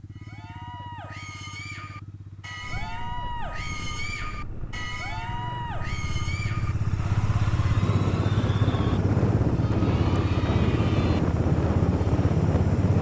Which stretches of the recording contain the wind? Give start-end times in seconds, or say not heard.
2.6-12.9.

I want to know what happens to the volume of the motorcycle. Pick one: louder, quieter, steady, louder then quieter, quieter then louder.
louder.